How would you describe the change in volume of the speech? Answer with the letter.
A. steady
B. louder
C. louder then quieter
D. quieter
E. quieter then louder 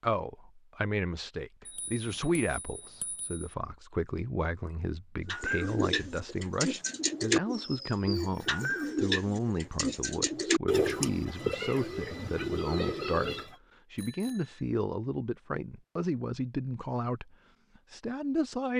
A.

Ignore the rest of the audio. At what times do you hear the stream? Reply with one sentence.
The stream can't be heard in this clip.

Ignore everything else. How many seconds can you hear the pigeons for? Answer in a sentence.
The pigeons can be heard for 8 seconds in total.